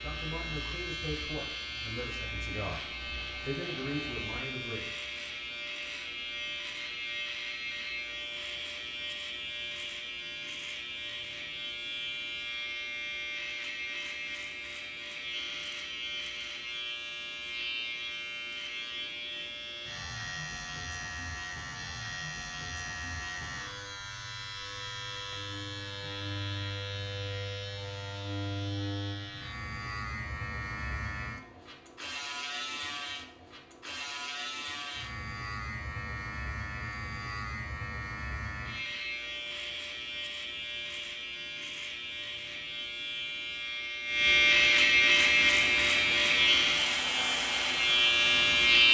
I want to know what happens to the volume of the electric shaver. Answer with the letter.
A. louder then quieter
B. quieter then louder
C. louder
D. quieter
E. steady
C.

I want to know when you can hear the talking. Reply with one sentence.
The talking can be heard from 0.0 to 4.8 s.